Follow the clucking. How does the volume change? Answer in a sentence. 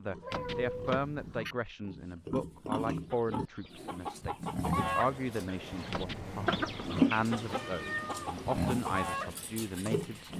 The volume of the clucking goes up, then down.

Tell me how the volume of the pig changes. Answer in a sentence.
The loudness of the pig goes up.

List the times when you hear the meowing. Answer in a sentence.
The meowing can be heard from 0.2 to 1.6 s and from 7.5 to 8.3 s.